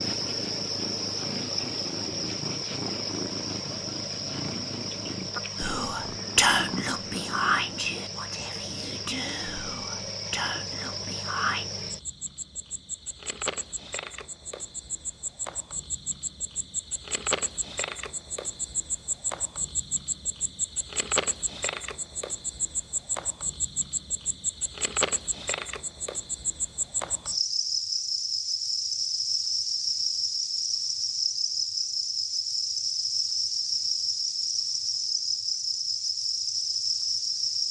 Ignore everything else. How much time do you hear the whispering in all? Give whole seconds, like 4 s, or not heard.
6 s.